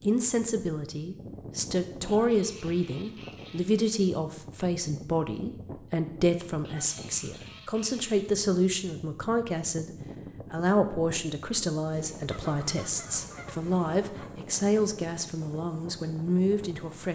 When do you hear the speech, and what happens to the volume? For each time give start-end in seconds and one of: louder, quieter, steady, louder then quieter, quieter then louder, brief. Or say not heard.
0.0-17.1 steady.